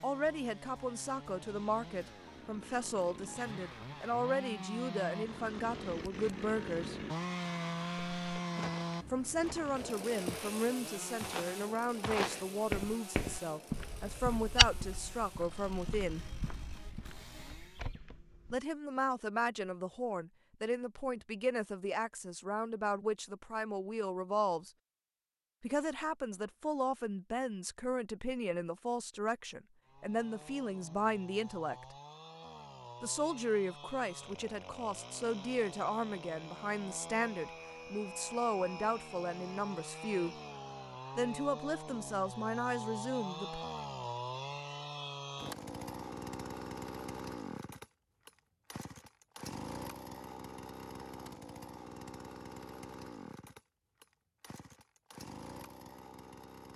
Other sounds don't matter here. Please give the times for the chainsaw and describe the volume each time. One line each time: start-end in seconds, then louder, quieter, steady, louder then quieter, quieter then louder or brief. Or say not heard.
0.0-17.9 louder then quieter
29.9-56.7 louder then quieter.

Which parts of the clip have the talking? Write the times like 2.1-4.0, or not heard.
0.0-7.0, 9.1-16.4, 18.5-24.7, 25.6-31.9, 33.0-40.4, 41.1-43.6.